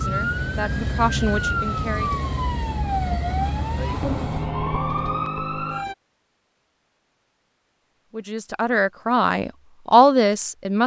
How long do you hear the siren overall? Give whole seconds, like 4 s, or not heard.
6 s.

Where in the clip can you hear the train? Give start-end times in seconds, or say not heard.
0.0-4.5.